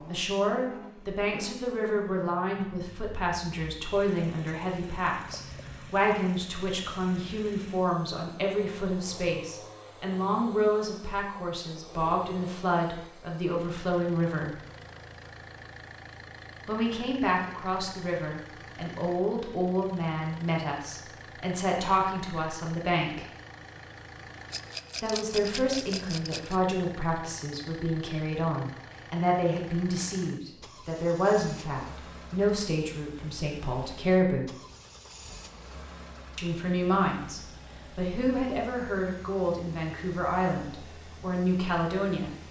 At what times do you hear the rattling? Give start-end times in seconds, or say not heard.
24.5-26.6.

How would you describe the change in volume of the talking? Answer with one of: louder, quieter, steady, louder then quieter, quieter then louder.
steady.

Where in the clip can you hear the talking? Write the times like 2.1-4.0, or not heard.
0.1-14.6, 16.6-23.2, 25.0-34.5, 36.4-42.4.